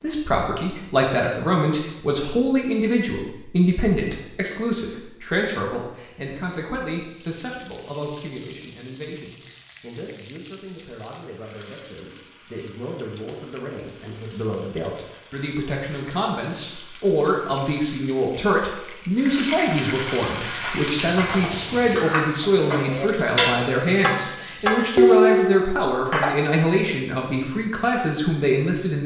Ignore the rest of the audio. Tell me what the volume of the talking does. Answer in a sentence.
The volume of the talking goes down, then up.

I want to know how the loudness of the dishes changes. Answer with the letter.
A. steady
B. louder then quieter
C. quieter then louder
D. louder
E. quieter
D.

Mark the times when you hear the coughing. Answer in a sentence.
You can't hear the coughing here.